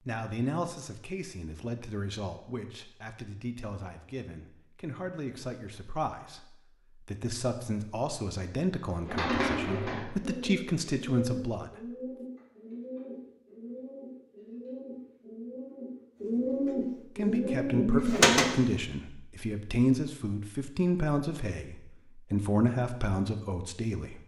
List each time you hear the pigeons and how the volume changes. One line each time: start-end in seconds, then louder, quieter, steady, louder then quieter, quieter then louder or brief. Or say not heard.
8.9-18.6 quieter then louder.